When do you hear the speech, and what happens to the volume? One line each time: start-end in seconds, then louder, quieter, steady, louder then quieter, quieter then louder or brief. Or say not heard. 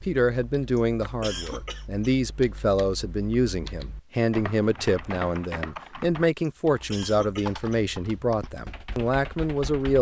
0.0-9.9 steady.